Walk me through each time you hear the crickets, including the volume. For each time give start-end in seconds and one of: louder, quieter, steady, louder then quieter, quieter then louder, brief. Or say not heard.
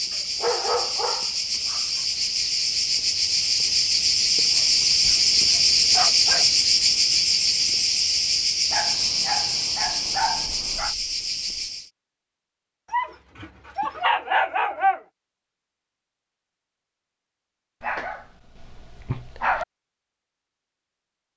0.0-11.9 louder then quieter.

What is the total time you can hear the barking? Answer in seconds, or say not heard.
10 s.